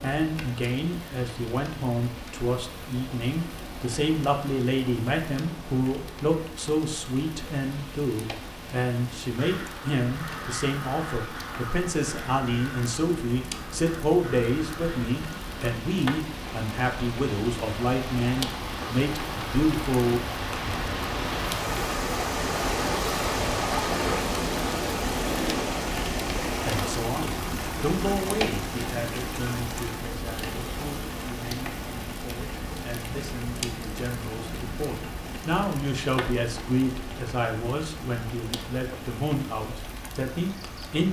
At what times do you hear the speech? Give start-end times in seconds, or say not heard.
0.0-20.2, 26.5-41.0.